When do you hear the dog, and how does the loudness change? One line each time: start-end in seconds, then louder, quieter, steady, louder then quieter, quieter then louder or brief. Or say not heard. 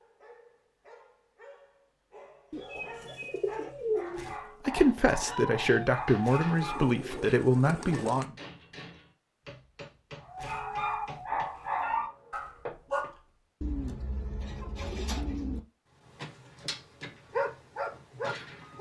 0.0-7.0 louder
10.2-13.1 brief
16.0-18.7 brief.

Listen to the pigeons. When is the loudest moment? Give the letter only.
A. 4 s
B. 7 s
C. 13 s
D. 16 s
A.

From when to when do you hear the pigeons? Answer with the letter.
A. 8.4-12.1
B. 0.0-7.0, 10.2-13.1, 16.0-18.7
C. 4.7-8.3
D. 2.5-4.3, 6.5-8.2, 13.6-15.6
D.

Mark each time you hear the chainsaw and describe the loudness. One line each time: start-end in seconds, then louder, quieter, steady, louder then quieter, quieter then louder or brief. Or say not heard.
not heard.